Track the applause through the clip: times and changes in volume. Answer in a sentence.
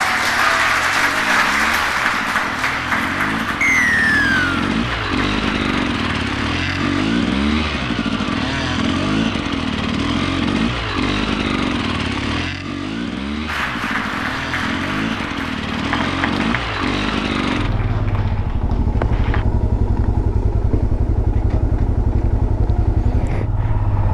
The applause can be heard from 0.0 to 7.0 s, getting quieter; and from 13.4 to 19.4 s, getting quieter.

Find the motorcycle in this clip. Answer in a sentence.
The motorcycle can be heard from 0.0 to 24.0 s.